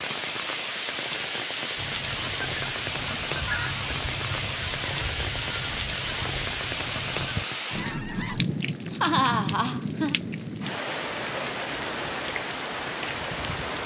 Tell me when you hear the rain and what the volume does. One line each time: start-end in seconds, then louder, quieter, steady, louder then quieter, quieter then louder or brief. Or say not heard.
0.0-13.8 steady.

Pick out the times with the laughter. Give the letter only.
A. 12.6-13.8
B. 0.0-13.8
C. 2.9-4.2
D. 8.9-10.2
D.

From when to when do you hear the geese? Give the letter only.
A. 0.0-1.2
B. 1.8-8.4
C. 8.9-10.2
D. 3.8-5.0
B.